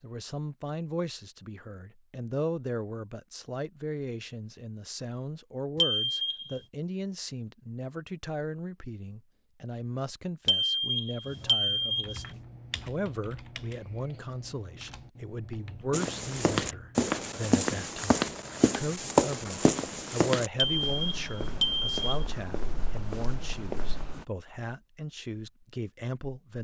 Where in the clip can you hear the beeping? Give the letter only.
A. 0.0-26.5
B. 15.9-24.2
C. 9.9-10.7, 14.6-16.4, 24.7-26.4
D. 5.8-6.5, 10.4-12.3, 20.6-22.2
D.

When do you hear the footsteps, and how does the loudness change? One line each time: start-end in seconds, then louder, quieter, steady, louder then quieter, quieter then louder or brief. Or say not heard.
15.9-24.2 quieter.